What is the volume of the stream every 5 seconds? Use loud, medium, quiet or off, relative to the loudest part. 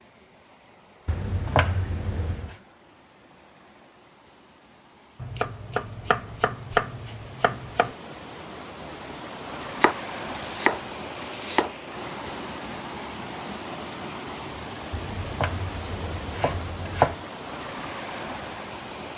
quiet, medium, loud, loud.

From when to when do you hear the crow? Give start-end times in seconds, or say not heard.
not heard.